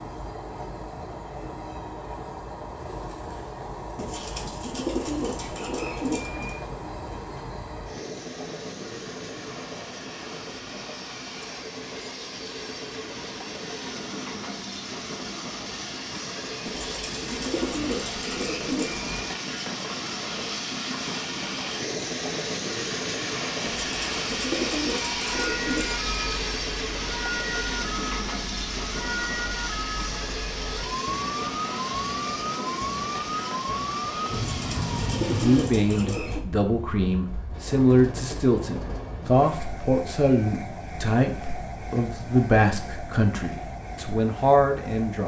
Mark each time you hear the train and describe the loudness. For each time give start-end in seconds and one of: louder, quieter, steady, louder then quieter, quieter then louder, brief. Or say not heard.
0.0-45.2 louder then quieter.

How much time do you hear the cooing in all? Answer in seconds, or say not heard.
10 s.